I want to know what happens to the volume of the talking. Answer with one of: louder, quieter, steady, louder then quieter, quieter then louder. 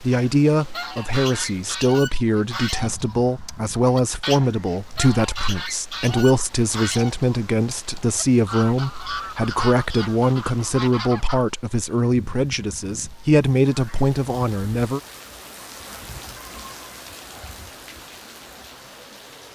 steady.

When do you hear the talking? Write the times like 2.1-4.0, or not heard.
0.0-15.0.